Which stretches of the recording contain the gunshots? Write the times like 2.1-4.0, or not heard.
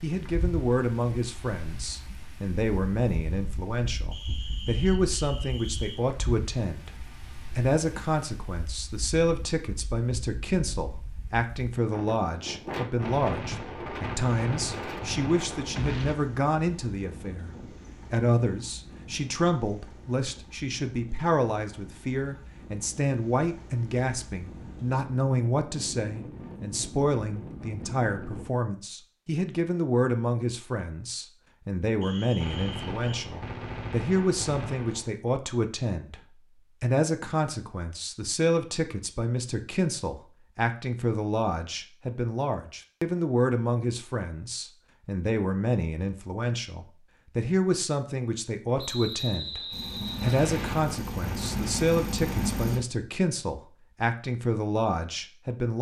13.0-16.1, 32.4-35.1, 50.2-52.9.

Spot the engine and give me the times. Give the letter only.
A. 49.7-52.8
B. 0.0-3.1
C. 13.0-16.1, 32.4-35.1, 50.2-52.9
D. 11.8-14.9
A.